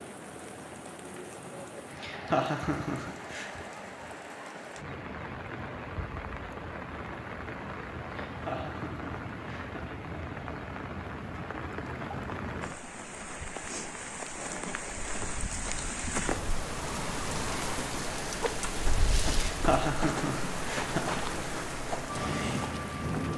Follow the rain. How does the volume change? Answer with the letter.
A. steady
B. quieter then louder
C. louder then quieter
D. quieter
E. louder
E.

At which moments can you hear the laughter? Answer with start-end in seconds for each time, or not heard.
2.0-3.6, 8.2-10.8, 19.4-21.2.